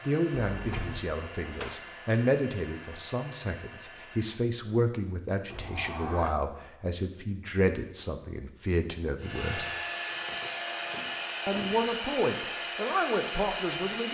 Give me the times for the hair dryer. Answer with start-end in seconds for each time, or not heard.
0.0-4.4, 9.2-14.1.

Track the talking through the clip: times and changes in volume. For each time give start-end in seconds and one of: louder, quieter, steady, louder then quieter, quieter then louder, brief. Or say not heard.
0.1-9.7 steady
11.4-14.1 brief.